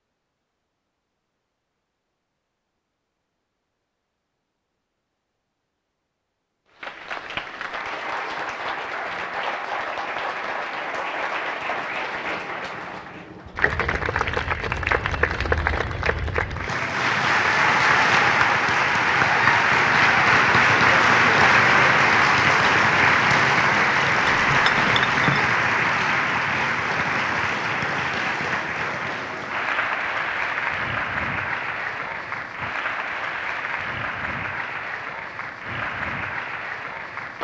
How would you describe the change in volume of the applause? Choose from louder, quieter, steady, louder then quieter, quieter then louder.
louder then quieter.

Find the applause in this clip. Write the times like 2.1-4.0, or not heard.
6.8-37.4.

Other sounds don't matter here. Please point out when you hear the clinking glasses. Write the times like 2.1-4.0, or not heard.
24.2-25.5.